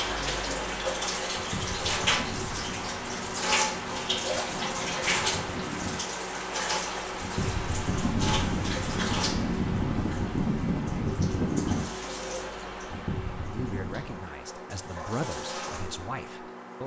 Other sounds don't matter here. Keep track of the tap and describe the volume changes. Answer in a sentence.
The volume of the tap goes down.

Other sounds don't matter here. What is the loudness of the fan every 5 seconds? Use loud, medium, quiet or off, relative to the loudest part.
medium, loud, loud, off.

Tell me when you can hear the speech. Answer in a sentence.
You can hear the speech from 13.5 to 16.8 s.